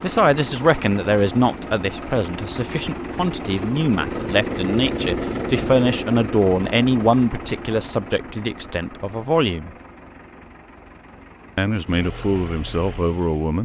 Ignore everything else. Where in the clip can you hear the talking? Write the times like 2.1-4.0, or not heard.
0.0-9.7, 11.6-13.6.